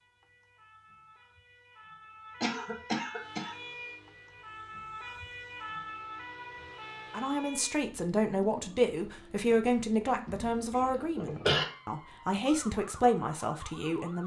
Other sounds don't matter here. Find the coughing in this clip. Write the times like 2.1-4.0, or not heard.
2.4-3.5, 10.3-11.7.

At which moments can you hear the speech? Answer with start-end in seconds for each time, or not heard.
7.1-14.2.